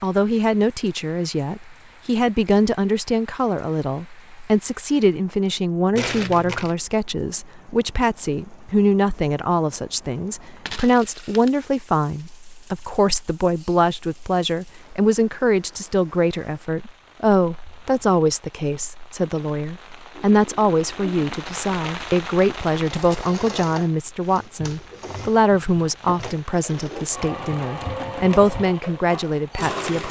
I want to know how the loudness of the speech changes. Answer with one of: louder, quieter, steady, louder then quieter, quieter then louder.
steady.